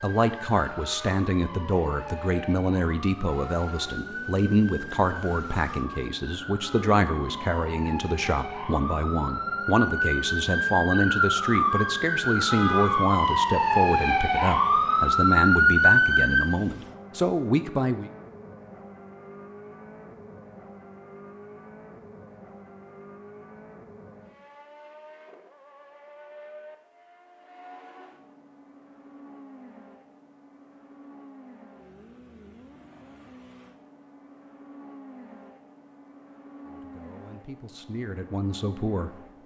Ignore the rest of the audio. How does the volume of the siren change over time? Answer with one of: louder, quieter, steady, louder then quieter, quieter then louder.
louder.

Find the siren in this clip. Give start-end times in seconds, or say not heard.
0.0-16.4.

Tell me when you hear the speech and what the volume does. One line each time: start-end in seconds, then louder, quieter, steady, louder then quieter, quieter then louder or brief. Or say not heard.
0.0-18.1 steady
36.6-39.1 brief.